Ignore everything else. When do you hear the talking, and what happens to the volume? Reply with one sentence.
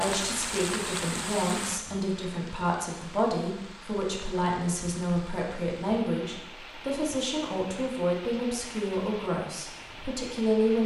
The talking can be heard from 0.0 to 10.8 s, at a steady volume.